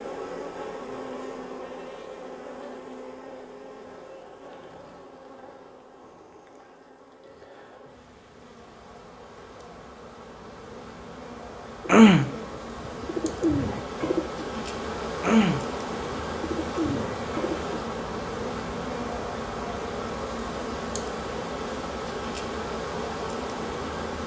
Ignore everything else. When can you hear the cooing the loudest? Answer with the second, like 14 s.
12 s.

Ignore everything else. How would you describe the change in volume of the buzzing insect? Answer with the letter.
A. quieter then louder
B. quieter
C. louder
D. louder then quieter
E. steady
A.